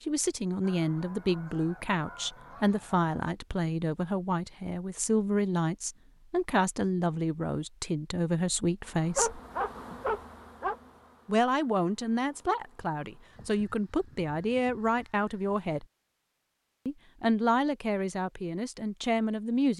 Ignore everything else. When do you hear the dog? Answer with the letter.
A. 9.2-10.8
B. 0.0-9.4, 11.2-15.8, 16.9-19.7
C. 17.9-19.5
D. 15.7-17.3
A.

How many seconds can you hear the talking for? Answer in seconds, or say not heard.
17 s.